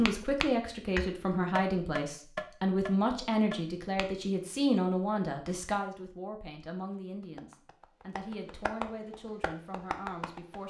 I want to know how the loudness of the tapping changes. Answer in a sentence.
The loudness of the tapping goes down, then up.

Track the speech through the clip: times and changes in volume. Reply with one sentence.
The speech can be heard from 0.0 to 10.6 s, getting quieter.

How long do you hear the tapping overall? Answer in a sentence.
The tapping can be heard for 8 seconds in total.